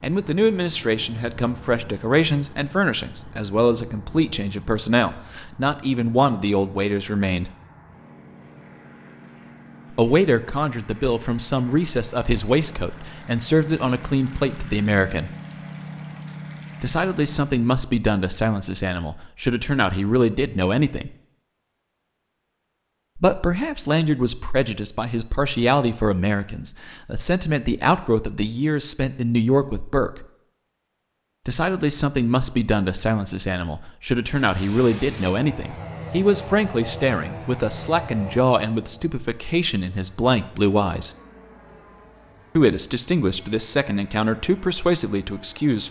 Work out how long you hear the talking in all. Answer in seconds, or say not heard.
37 s.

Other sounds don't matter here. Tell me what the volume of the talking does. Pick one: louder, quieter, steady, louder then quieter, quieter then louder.
steady.